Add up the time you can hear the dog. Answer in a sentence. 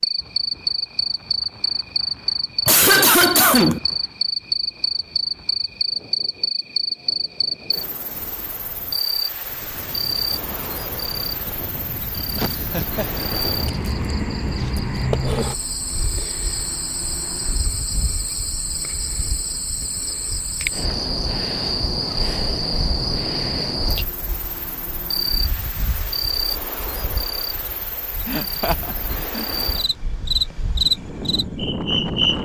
The dog can't be heard in this clip.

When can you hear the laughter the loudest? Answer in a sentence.
The volume of the laughter peaks at 3 seconds.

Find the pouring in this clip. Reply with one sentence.
The pouring can't be heard in this clip.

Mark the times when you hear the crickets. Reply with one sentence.
The crickets can be heard from 0.0 to 32.4 s.